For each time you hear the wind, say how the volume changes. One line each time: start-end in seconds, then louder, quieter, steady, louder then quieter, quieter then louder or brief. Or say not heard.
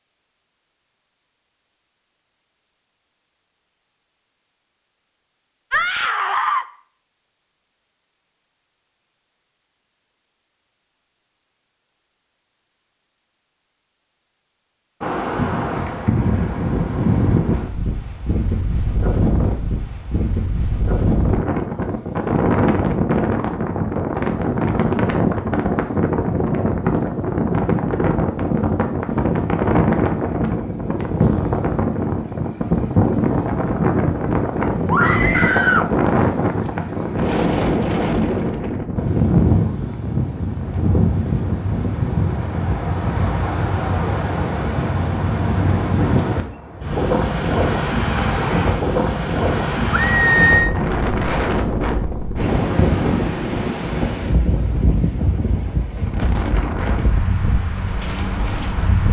15.0-59.0 steady.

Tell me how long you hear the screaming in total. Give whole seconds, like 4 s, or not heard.
3 s.